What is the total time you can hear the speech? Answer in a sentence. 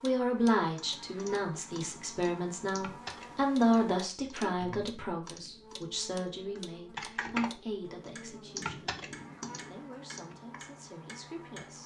The speech can be heard for 12 seconds in total.